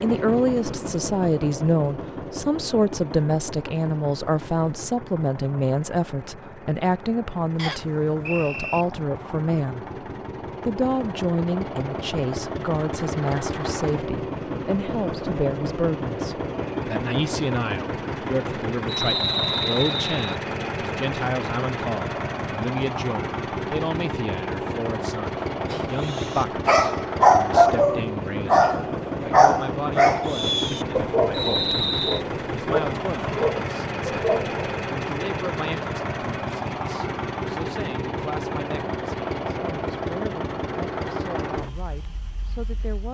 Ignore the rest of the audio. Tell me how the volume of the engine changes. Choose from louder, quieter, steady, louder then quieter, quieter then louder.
louder.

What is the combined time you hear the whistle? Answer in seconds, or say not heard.
4 s.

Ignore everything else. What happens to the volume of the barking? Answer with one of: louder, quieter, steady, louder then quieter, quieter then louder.
quieter.